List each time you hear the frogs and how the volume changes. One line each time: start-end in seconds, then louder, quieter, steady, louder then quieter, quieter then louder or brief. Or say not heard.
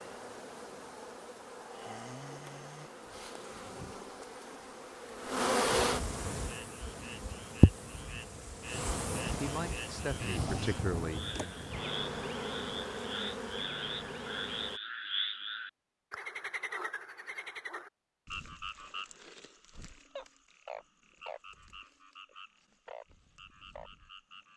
6.5-24.5 louder then quieter.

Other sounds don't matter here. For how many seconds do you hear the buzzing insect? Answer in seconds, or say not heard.
15 s.